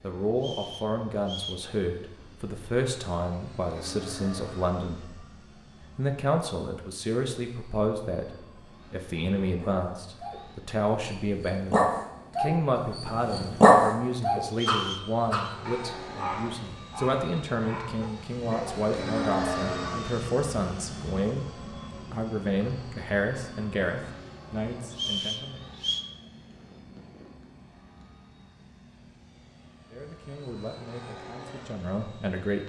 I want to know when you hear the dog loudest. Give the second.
14 s.